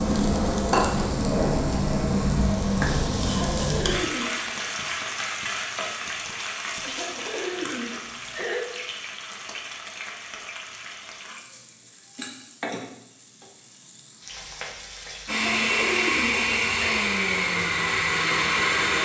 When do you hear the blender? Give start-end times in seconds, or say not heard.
15.2-19.0.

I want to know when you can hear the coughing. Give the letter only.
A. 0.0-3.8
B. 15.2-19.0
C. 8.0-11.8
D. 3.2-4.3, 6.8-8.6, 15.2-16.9
D.